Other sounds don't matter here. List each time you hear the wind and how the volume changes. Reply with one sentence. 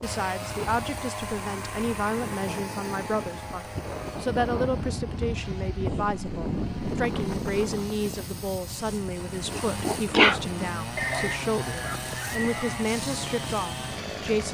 The wind can be heard from 0.0 to 14.4 s, getting louder then quieter.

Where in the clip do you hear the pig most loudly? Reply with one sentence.
The loudest moment of the pig is at 10 seconds.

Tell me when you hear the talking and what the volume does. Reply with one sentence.
You can hear the talking from 0.0 to 14.4 s, at a steady volume.